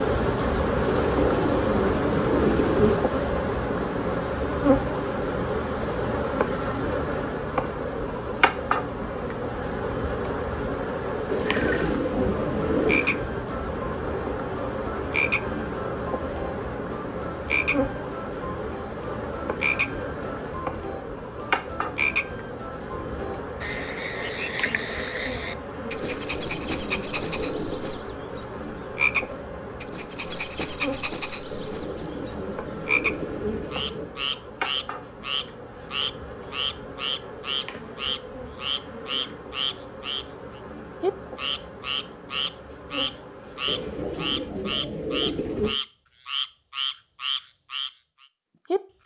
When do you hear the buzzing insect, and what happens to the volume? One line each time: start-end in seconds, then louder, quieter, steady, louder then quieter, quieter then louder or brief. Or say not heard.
0.0-44.8 quieter.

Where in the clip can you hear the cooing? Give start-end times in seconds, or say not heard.
0.8-3.0, 11.3-13.1, 26.0-27.9, 31.5-34.1, 43.6-45.8.